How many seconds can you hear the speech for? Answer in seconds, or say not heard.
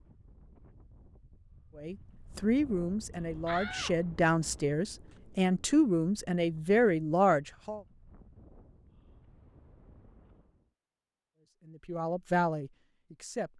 8 s.